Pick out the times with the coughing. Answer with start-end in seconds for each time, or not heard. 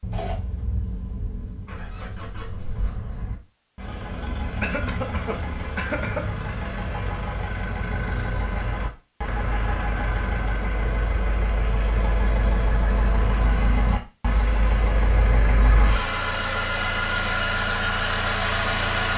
4.6-6.2.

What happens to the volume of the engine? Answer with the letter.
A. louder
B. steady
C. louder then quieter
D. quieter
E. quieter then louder
A.